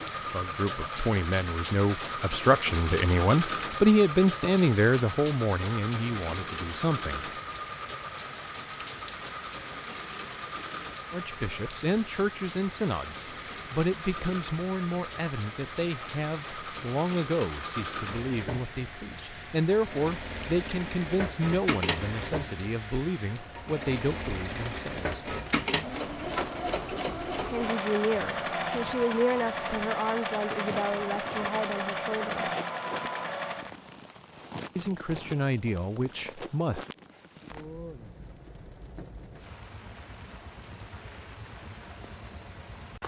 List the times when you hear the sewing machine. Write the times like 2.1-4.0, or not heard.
0.0-33.7.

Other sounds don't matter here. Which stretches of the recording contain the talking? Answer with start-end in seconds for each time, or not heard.
0.0-7.3, 11.1-25.2, 27.4-32.5, 34.8-36.9.